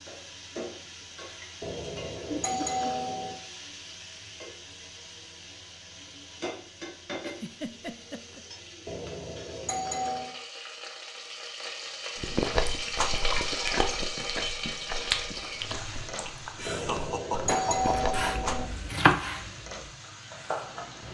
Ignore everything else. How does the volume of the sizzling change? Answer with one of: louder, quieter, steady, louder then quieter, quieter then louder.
louder then quieter.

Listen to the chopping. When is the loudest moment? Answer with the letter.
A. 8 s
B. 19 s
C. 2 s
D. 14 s
B.